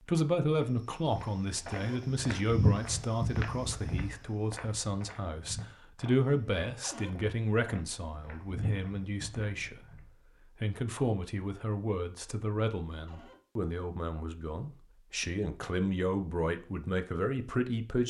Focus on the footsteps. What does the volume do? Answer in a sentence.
The volume of the footsteps goes down, then up.